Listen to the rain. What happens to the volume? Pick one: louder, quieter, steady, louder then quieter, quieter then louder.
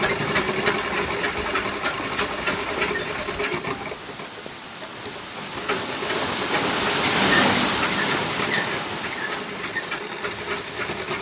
louder then quieter.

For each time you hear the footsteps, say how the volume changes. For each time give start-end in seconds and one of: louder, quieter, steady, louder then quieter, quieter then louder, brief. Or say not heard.
not heard.